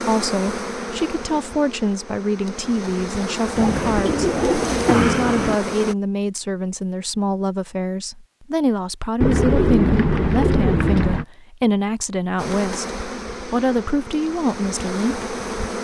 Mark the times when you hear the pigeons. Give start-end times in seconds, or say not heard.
3.5-5.5, 9.2-11.2.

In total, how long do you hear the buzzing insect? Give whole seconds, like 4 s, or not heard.
9 s.